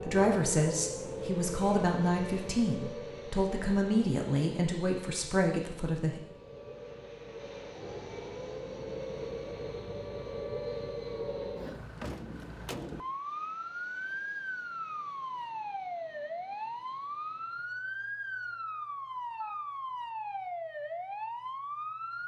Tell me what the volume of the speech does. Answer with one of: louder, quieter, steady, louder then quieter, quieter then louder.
steady.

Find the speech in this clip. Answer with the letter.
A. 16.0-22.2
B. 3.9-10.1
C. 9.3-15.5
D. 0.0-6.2
D.